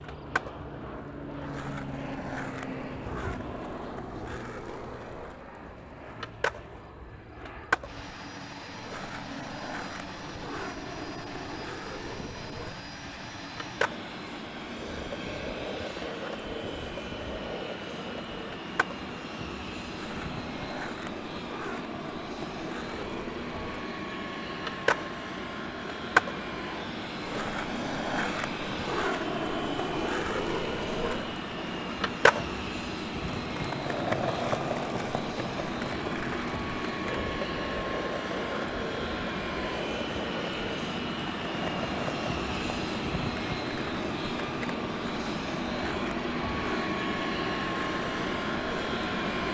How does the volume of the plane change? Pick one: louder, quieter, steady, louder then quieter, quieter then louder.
louder.